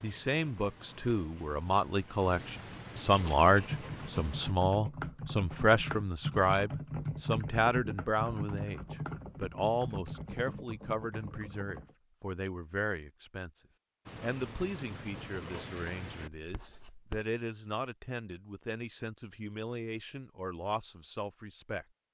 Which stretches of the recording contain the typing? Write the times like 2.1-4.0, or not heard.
3.1-11.9.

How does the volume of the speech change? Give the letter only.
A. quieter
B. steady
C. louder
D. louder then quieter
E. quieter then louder
A.